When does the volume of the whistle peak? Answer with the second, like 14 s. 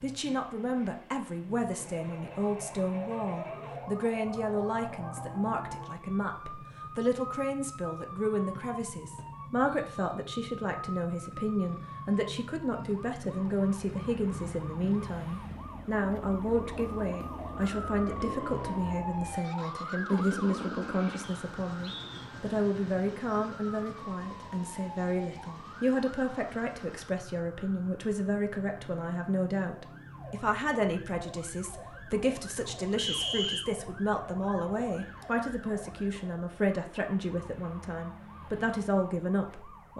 33 s.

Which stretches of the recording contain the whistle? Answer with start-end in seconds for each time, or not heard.
8.6-10.2, 21.2-22.2, 33.0-33.6.